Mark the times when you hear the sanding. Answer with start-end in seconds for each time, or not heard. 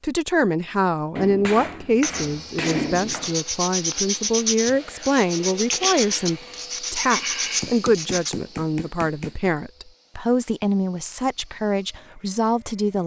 2.0-8.3.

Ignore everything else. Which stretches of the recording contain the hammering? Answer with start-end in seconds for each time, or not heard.
1.1-3.4, 7.6-9.5.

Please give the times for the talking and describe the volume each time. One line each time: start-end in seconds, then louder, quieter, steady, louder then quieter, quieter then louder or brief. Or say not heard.
0.0-13.0 steady.